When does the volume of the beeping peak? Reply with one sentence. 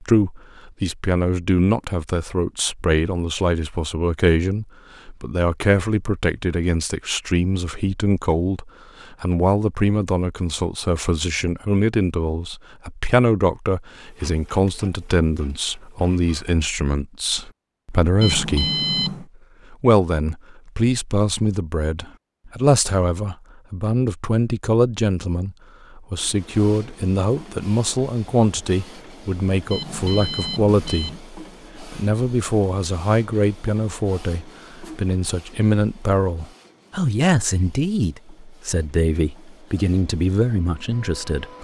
The volume of the beeping peaks at 19 seconds.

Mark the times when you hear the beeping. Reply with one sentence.
The beeping can be heard from 18.2 to 19.2 s and from 29.7 to 31.2 s.